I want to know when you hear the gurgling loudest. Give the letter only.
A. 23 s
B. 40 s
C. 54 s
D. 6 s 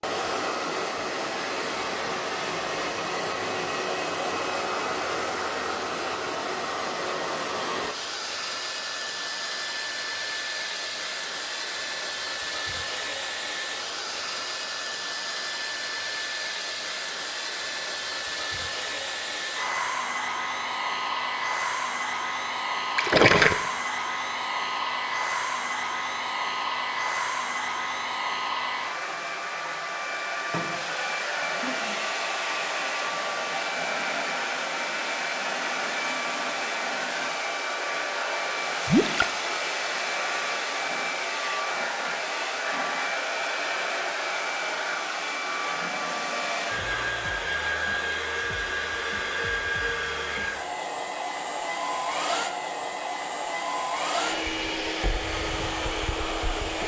A.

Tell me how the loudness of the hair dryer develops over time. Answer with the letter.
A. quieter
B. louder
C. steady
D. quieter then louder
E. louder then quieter
C.